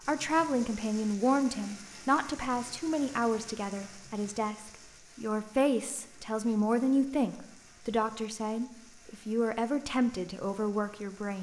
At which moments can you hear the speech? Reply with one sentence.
You can hear the speech from 0.1 to 11.3 s.